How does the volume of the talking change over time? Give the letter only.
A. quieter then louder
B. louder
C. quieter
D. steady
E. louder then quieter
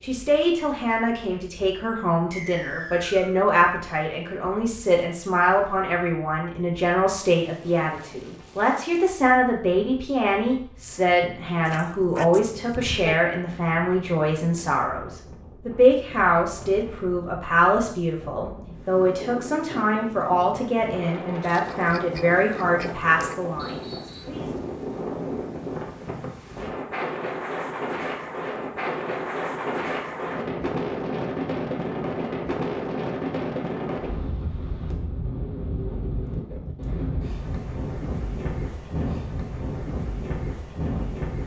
D.